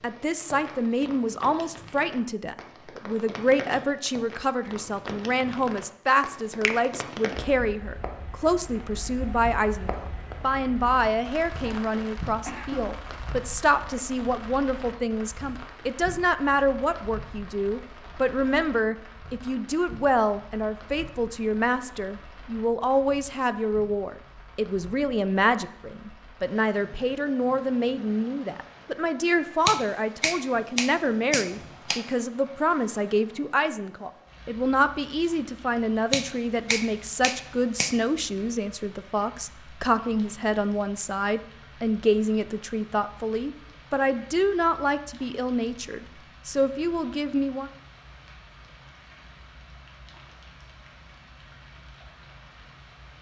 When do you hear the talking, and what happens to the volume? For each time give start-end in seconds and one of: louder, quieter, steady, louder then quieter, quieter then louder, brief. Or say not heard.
0.0-47.7 steady.